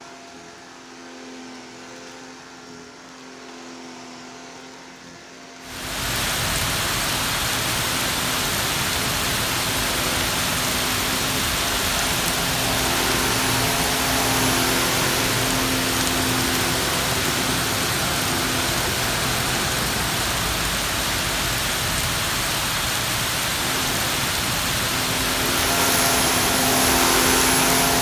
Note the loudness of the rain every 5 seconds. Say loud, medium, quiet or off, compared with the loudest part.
off, loud, loud, loud, loud, loud.